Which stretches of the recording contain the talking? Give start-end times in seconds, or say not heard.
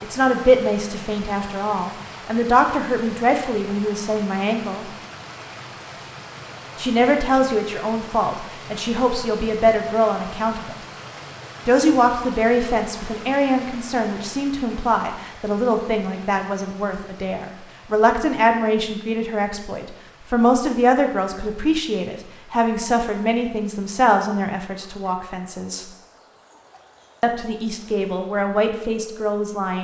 0.0-4.8, 6.8-10.8, 11.7-25.9, 27.2-29.7.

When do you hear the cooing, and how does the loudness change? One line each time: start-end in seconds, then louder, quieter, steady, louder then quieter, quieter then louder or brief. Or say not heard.
not heard.